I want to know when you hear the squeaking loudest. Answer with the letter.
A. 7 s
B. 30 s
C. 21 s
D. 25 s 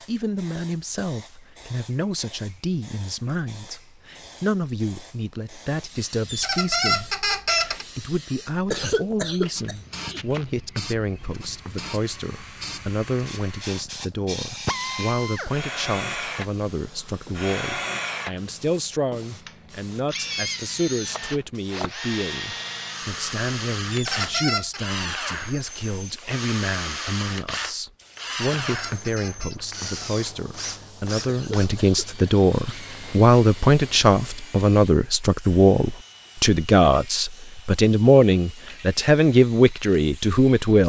A.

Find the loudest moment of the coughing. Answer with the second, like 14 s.
9 s.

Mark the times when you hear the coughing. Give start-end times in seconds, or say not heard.
8.7-10.4, 31.2-33.2.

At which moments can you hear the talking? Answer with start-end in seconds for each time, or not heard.
0.1-40.8.